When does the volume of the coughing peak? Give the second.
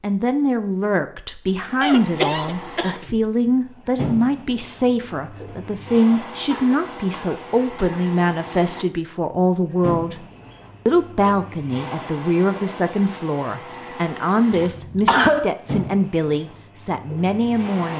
15 s.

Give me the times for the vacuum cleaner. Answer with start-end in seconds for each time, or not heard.
1.4-17.9.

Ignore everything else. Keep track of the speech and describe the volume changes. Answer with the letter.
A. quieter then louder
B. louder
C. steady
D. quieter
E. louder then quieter
C.